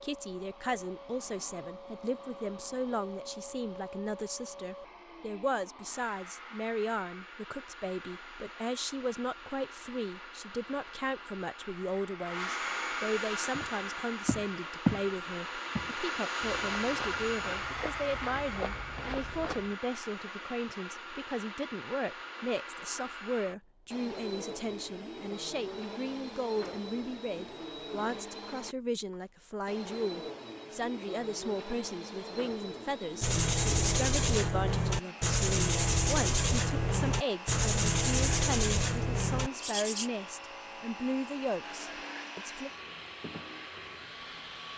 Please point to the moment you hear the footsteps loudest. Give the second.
15 s.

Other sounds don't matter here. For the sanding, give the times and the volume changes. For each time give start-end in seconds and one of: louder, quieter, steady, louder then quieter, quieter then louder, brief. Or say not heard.
33.2-40.1 steady.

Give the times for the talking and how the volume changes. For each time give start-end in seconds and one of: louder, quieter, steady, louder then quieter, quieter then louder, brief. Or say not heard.
0.0-42.7 steady.